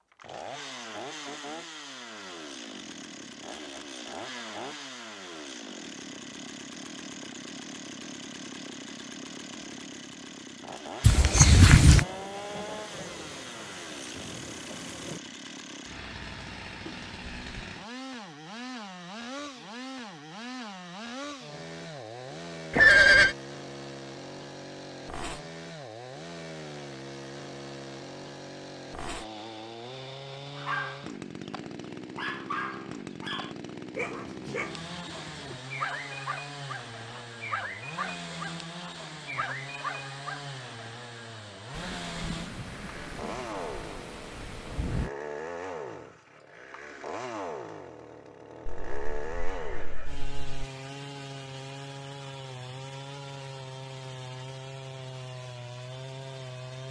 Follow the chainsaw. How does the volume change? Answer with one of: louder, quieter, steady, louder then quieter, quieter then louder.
steady.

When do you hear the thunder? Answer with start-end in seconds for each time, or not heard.
11.2-15.2, 41.7-45.1.